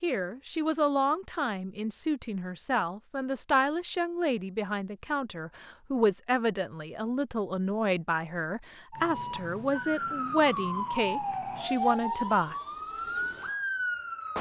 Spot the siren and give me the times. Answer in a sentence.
The siren can be heard from 8.9 to 14.3 s.